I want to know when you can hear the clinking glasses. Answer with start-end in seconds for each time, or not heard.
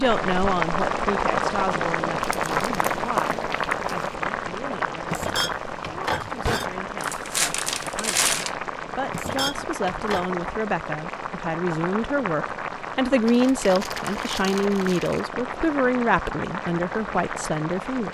5.1-6.8, 9.1-10.2.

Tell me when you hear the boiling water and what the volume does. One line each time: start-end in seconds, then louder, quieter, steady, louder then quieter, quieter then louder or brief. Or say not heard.
0.0-18.1 quieter.